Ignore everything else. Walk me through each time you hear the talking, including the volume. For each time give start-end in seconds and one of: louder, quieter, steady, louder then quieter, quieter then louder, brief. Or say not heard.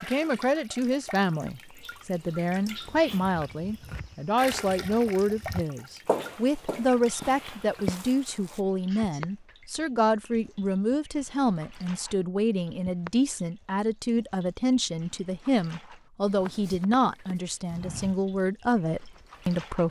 0.0-19.8 steady.